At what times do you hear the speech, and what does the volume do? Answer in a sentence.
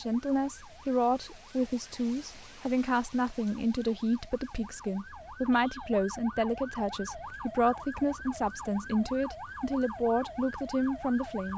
The speech can be heard from 0.0 to 11.5 s, at a steady volume.